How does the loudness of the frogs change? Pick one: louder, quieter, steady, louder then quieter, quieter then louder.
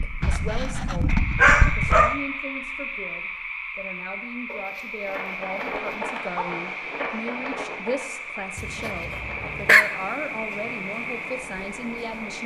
steady.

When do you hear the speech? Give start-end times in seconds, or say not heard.
0.0-12.4.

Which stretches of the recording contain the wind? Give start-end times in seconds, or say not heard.
4.8-12.4.